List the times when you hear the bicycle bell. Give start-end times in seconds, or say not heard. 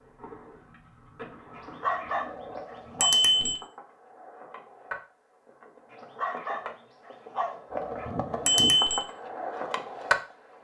3.0-3.5, 8.4-9.0.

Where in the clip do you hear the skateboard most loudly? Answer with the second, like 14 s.
10 s.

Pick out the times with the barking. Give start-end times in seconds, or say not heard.
1.6-3.1, 5.9-8.1.